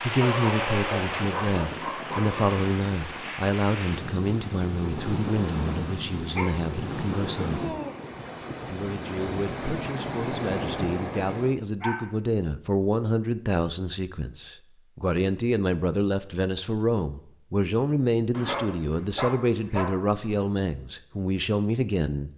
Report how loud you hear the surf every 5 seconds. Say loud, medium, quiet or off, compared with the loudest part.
loud, loud, loud, off, off.